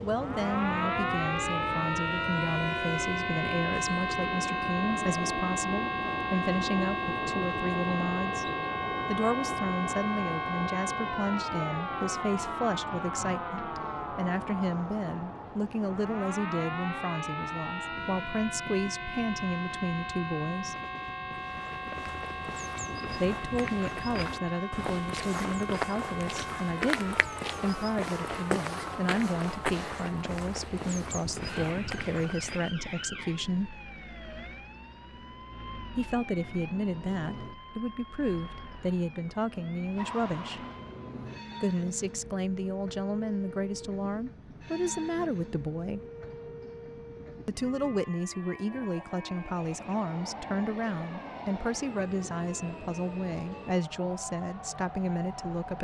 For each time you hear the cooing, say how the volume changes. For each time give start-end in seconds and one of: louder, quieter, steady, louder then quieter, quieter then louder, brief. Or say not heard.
not heard.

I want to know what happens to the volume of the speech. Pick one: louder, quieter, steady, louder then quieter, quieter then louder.
steady.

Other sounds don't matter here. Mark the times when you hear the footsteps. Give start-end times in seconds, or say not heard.
21.3-32.7.